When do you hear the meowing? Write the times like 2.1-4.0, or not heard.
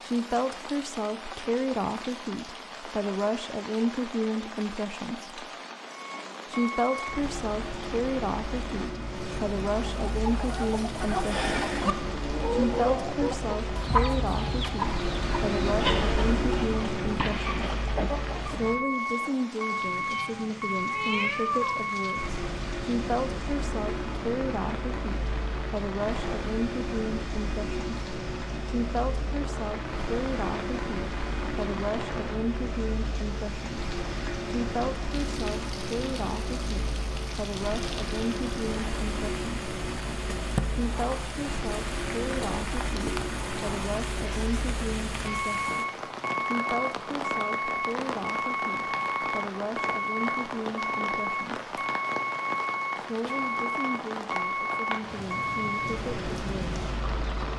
20.1-21.8.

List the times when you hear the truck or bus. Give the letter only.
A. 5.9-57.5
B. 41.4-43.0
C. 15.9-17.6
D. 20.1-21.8
A.